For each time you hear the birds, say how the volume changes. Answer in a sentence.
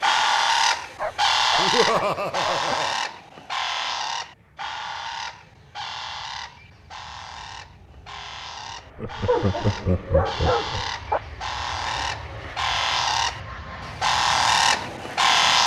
You can hear the birds from 0.0 to 15.6 s, getting quieter then louder.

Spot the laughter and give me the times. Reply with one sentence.
You can hear the laughter from 1.6 to 3.0 s and from 8.9 to 10.9 s.